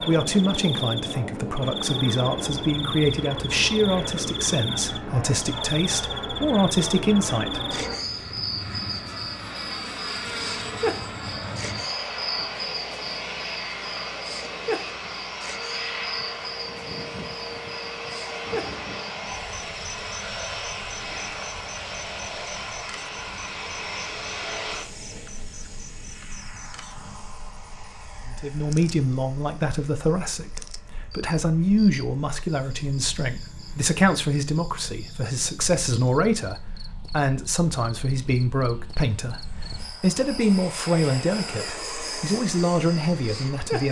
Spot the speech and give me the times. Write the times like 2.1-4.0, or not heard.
0.0-7.8, 28.2-43.8.